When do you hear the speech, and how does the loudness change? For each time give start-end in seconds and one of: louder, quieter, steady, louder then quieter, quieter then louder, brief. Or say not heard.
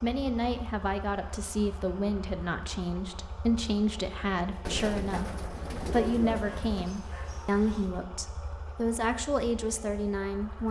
0.0-10.6 steady.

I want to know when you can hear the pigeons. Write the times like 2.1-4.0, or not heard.
4.7-7.0.